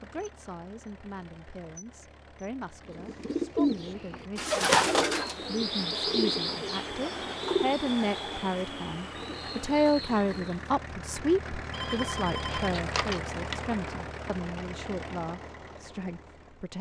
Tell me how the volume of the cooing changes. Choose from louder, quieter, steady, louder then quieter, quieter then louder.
quieter.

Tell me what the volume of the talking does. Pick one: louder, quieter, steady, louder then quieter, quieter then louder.
louder then quieter.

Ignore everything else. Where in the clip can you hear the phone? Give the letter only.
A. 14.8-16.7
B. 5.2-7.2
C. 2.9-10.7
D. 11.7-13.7
D.